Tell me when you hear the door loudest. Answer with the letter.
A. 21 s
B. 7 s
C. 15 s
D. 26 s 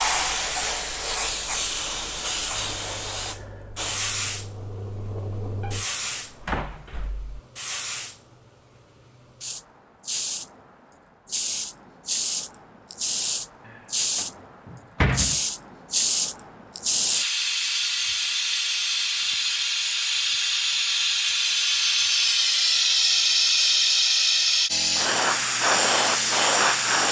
C.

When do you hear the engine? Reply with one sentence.
The engine can be heard from 2.5 to 5.8 s.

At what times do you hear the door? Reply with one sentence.
The door can be heard from 5.6 to 7.3 s and from 13.7 to 15.4 s.